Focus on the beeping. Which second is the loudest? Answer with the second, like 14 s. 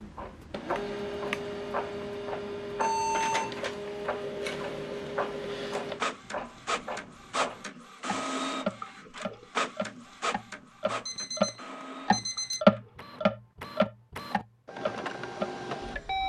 3 s.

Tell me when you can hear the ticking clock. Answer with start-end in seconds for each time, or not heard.
0.0-16.2.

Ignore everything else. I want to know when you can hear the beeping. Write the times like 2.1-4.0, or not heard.
2.8-3.5, 10.8-12.6.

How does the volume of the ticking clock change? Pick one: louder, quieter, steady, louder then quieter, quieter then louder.
louder then quieter.